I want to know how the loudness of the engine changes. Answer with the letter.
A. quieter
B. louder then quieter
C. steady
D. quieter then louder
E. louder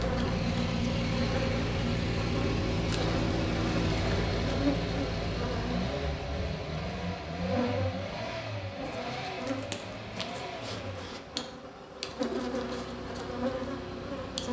A.